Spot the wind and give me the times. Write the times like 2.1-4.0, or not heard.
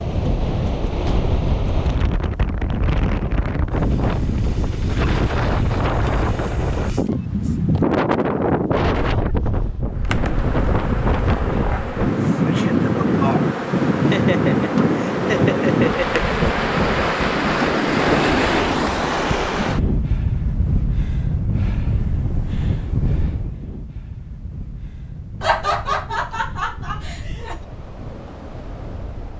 0.0-29.3.